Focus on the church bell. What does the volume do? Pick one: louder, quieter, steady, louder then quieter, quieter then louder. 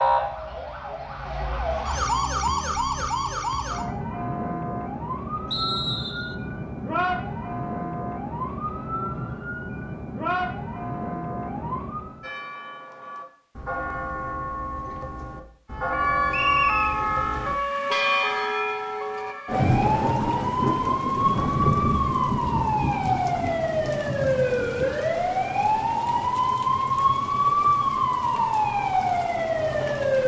louder.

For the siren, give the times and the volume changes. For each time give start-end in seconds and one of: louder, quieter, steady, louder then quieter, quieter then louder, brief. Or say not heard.
0.0-12.3 steady
15.7-30.2 steady.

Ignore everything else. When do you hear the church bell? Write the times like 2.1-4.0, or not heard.
12.2-19.4.